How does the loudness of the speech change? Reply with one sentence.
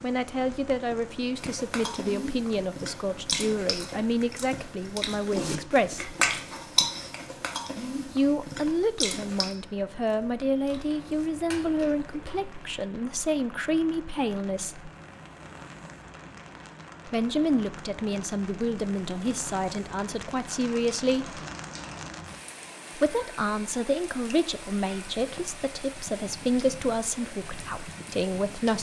The volume of the speech stays about the same.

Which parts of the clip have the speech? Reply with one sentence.
The speech can be heard from 0.0 to 6.2 s, from 8.2 to 14.9 s, from 17.1 to 21.4 s and from 22.9 to 28.7 s.